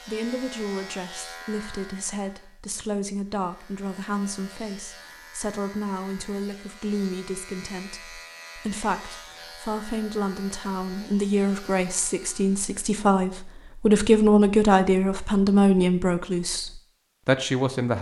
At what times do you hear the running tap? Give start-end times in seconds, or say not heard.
not heard.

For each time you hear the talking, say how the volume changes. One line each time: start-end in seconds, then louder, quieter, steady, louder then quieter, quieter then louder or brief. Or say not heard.
0.1-17.9 louder.